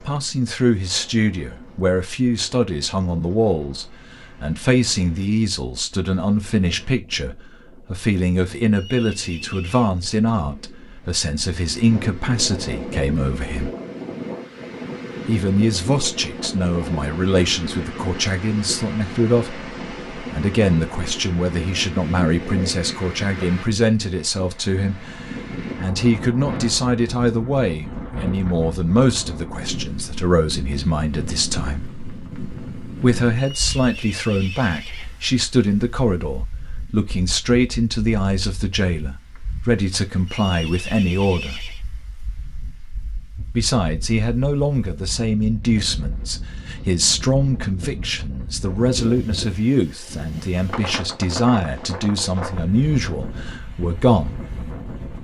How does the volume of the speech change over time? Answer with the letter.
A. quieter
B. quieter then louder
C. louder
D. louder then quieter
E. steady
E.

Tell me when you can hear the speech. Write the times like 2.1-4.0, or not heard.
0.1-13.7, 15.2-31.9, 33.0-41.6, 43.5-54.4.